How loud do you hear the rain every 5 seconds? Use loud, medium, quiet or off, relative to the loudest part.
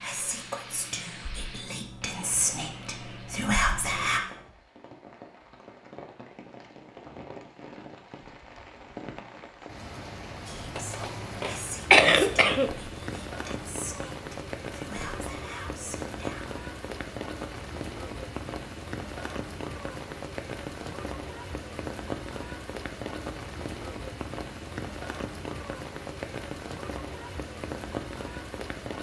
medium, medium, loud, loud, loud, loud.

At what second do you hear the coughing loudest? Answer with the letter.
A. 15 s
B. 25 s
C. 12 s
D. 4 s
C.